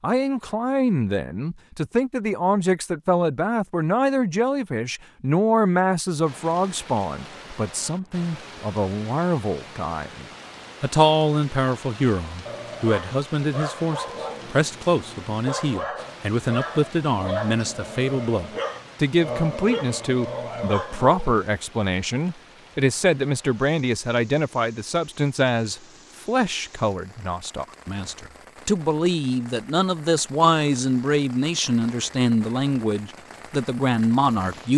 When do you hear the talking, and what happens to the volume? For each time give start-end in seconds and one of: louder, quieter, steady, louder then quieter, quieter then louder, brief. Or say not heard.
0.0-34.7 steady.